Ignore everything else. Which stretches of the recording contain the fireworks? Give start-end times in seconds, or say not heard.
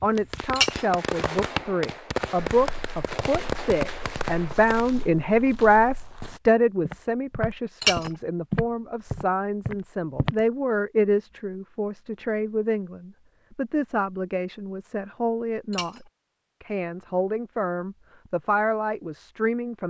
0.0-5.0.